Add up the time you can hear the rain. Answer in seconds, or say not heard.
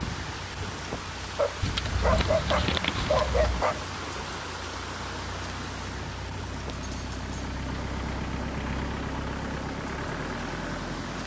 11 s.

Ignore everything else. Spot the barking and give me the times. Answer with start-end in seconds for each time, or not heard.
1.4-3.8.